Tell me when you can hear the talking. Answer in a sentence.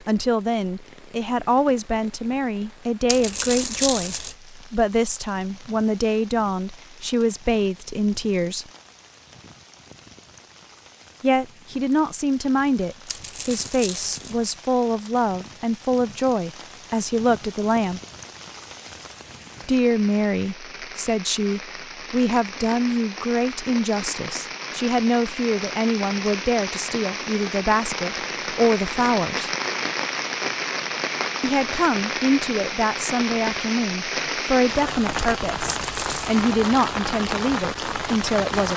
You can hear the talking from 0.1 to 8.7 s, from 11.2 to 18.0 s, from 19.6 to 29.5 s and from 31.4 to 38.7 s.